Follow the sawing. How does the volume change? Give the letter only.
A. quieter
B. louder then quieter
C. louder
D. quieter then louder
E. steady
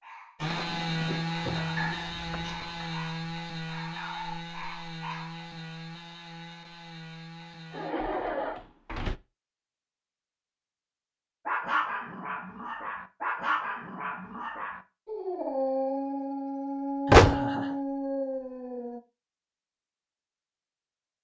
A.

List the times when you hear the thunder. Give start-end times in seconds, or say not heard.
not heard.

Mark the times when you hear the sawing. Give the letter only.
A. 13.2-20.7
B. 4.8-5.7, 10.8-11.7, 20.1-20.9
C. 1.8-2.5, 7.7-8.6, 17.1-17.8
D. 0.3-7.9
D.